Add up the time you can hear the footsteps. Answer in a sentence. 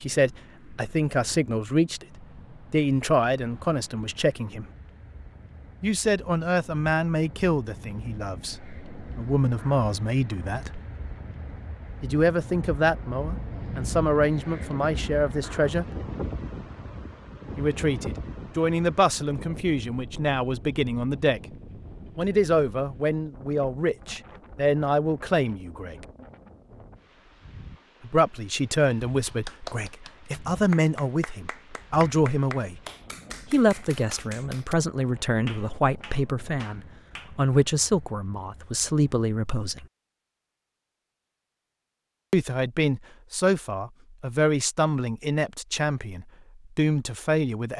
The footsteps can't be heard in this clip.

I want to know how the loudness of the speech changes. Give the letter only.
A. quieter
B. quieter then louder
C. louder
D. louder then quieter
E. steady
E.